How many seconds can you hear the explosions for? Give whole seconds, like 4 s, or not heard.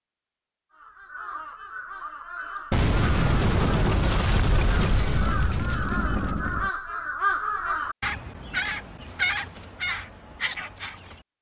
4 s.